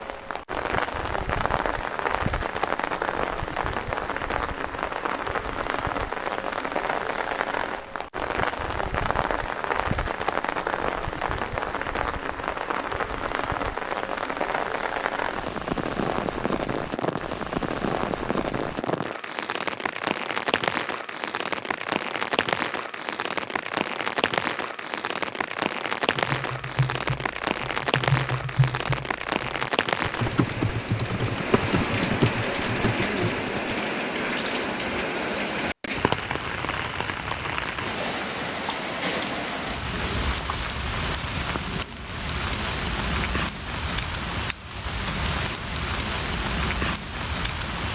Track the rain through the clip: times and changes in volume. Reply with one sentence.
You can hear the rain from 0.0 to 47.9 s, at a steady volume.